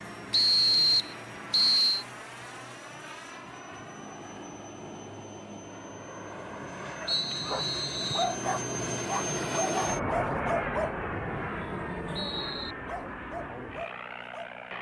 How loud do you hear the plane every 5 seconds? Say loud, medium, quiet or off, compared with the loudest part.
medium, loud, loud.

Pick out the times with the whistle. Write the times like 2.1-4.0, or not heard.
0.3-2.0, 7.0-8.3, 11.1-12.8.